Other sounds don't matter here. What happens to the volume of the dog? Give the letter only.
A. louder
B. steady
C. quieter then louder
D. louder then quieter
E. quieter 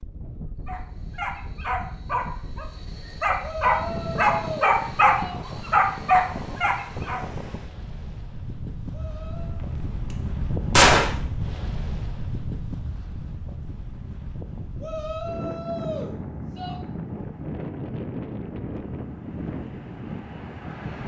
A.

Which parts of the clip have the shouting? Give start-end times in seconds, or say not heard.
3.4-5.4, 8.9-9.6, 14.8-16.8.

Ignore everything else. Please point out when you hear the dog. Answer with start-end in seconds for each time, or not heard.
0.7-7.2.